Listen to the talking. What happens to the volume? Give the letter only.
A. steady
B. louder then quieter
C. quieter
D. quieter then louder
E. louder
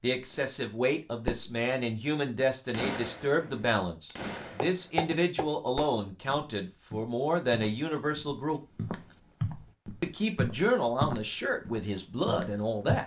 A.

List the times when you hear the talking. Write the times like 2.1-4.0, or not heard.
0.0-8.6, 10.0-13.0.